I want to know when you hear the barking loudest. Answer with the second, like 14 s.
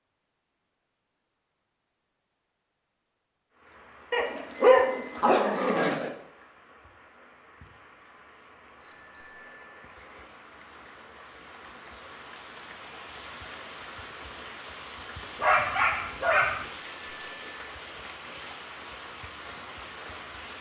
5 s.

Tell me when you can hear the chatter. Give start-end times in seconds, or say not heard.
not heard.